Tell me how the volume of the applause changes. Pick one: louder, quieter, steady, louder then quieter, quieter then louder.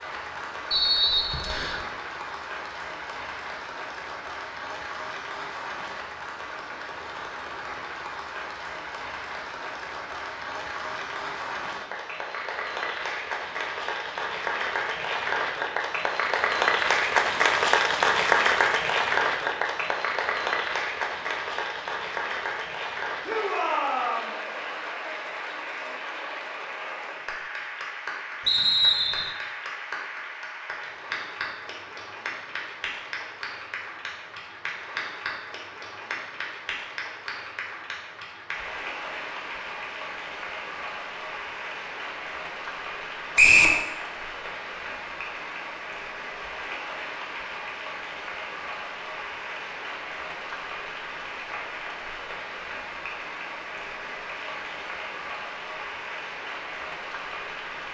louder then quieter.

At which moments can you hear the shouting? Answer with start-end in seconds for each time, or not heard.
23.2-24.3.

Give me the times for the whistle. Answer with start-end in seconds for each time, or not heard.
0.7-1.8, 28.4-29.3, 43.4-43.8.